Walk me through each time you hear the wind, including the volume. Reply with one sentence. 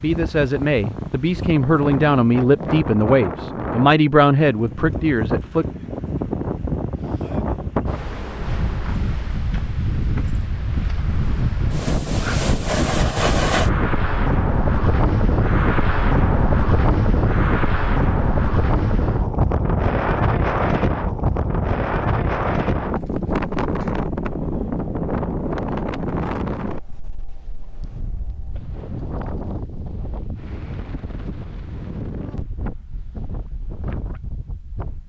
The wind can be heard from 0.0 to 35.0 s, getting louder then quieter.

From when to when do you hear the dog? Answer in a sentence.
The dog can't be heard in this clip.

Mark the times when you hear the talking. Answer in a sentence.
The talking can be heard from 0.0 to 5.7 s.